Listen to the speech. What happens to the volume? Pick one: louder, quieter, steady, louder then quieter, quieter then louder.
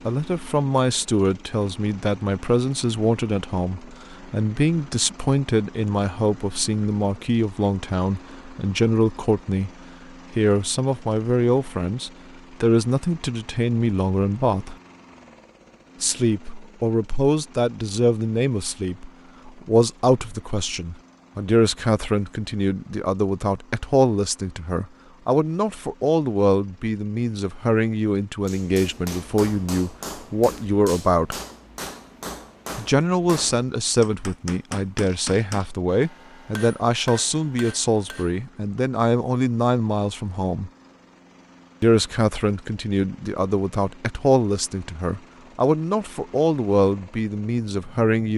steady.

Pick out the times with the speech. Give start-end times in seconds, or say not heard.
0.1-9.7, 10.3-14.8, 16.0-31.4, 32.8-40.7, 41.8-48.3.